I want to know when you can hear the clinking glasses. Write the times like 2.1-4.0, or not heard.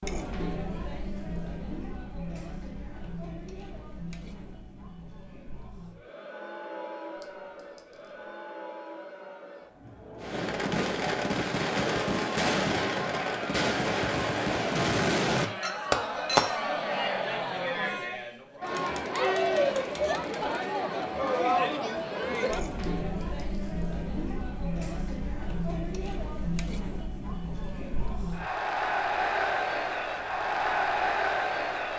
7.2-7.8, 15.6-16.6, 22.8-23.4.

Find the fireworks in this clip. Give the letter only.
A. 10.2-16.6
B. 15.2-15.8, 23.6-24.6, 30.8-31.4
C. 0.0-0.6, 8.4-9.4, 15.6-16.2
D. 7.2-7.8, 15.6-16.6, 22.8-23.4
A.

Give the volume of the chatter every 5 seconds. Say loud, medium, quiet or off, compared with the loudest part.
medium, quiet, medium, loud, loud, loud, loud.